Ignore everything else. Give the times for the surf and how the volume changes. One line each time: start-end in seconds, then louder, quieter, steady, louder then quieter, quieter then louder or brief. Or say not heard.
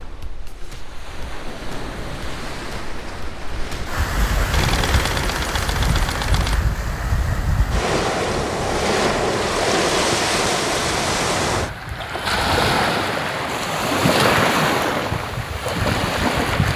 0.0-16.7 louder.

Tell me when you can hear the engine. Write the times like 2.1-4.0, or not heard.
4.5-6.6.